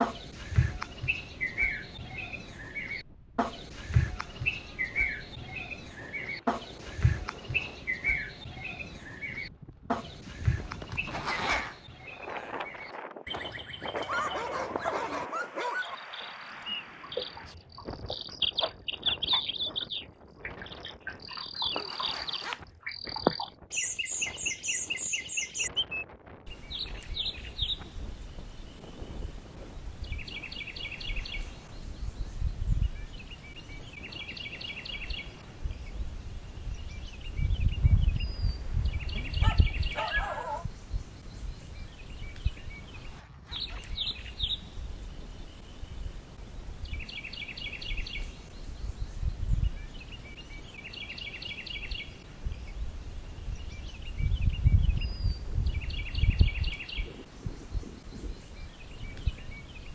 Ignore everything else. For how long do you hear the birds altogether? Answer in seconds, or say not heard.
60 s.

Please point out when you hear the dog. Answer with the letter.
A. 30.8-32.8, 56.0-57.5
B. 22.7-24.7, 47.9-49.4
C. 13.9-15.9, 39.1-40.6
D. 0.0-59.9
C.